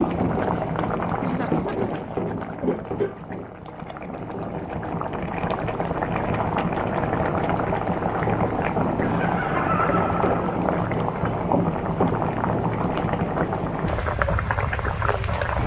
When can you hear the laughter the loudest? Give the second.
10 s.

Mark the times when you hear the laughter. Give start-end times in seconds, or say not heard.
1.1-2.1, 9.0-10.6.